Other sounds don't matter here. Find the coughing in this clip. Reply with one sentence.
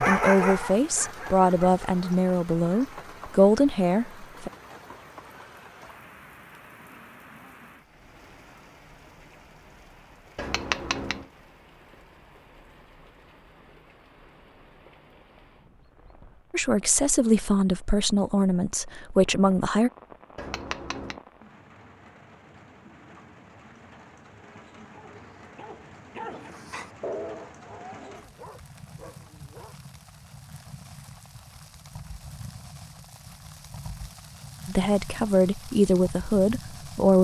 You can't hear the coughing here.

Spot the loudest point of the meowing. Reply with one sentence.
The volume of the meowing peaks at 11 seconds.